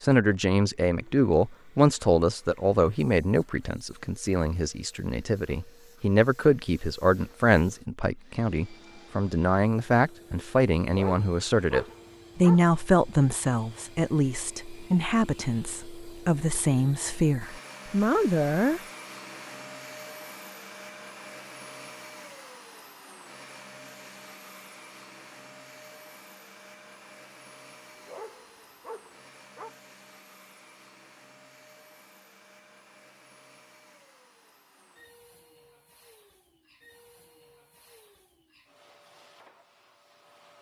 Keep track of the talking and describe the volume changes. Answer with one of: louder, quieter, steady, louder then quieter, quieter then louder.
steady.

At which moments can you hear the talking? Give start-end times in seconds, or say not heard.
0.0-18.8.